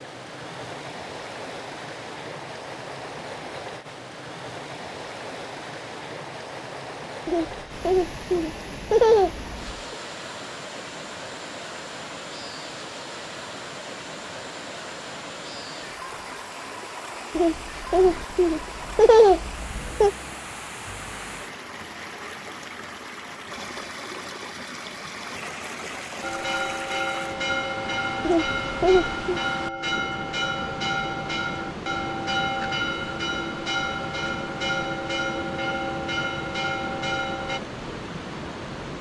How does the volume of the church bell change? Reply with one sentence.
The loudness of the church bell stays about the same.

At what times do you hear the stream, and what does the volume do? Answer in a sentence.
You can hear the stream from 0.0 to 38.9 s, at a steady volume.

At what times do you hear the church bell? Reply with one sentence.
You can hear the church bell from 26.2 to 37.6 s.